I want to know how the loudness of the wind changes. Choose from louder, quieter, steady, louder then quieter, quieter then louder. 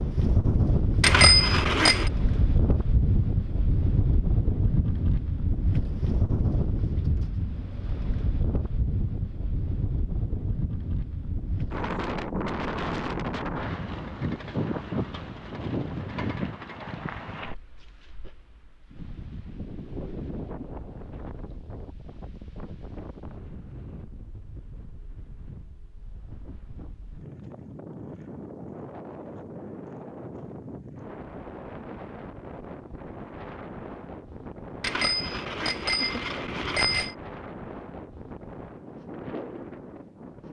quieter.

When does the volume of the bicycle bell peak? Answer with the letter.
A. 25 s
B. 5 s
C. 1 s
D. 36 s
C.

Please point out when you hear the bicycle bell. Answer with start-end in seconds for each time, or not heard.
1.0-2.1, 34.8-37.1.